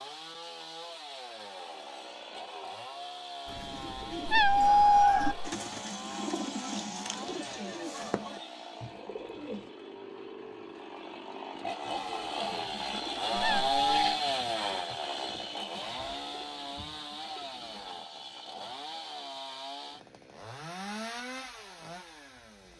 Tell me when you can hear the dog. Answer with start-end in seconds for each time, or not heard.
not heard.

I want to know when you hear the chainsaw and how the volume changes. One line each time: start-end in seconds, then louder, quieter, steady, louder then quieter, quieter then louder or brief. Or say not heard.
0.0-22.7 louder then quieter.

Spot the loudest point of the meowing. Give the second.
5 s.